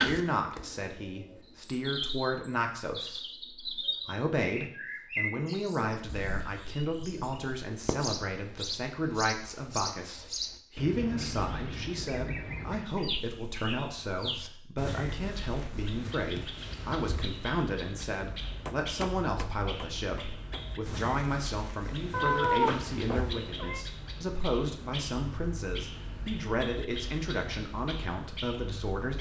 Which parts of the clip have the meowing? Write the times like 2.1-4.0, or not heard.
22.1-23.9.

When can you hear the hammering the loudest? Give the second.
19 s.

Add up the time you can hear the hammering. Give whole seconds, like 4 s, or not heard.
2 s.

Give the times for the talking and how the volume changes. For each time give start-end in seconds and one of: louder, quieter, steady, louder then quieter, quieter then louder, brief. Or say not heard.
0.0-29.1 steady.